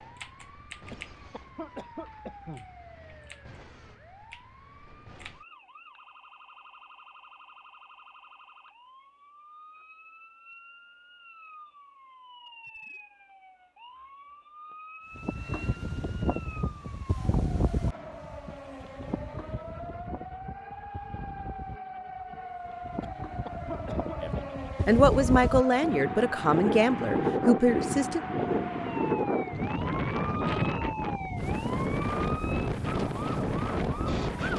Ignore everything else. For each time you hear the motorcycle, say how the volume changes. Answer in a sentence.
You can't hear the motorcycle here.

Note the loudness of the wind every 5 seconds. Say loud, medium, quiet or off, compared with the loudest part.
off, off, off, medium, quiet, loud, loud.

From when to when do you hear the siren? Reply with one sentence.
You can hear the siren from 0.0 to 34.5 s.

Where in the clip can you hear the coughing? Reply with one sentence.
You can hear the coughing from 0.9 to 2.7 s and from 23.0 to 24.4 s.